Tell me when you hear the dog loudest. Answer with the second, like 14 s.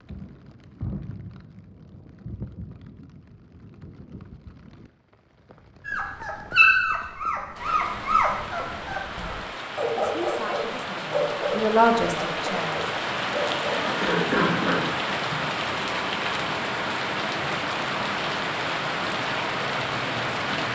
7 s.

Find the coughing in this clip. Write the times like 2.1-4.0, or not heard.
13.7-15.4.